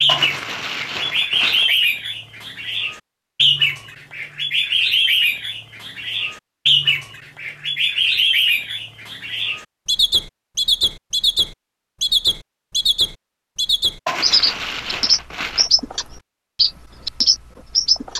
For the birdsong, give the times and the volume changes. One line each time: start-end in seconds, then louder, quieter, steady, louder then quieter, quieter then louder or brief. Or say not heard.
0.0-18.1 steady.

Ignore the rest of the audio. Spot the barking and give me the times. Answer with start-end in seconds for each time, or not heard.
0.1-1.8, 14.1-15.7.